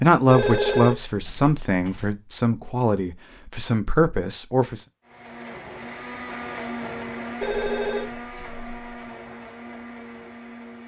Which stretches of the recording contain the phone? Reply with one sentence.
The phone can be heard from 0.2 to 2.1 s and from 7.4 to 9.1 s.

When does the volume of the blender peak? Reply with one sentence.
The loudest moment of the blender is at 7 seconds.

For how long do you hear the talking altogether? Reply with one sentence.
You can hear the talking for 5 seconds altogether.